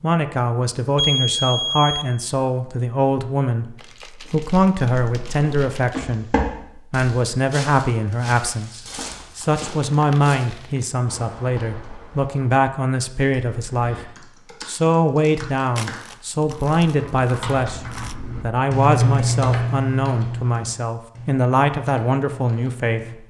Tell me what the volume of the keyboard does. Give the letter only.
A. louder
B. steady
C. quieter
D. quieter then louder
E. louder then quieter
E.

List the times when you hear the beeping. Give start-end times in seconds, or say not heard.
0.9-2.0.